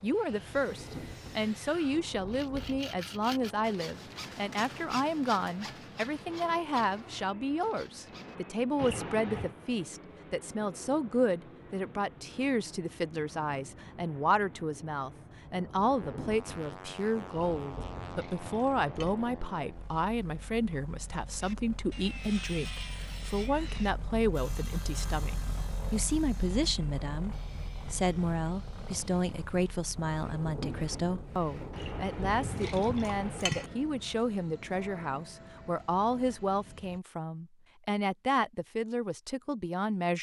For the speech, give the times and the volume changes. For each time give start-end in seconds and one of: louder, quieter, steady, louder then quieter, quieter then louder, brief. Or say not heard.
0.0-40.1 steady.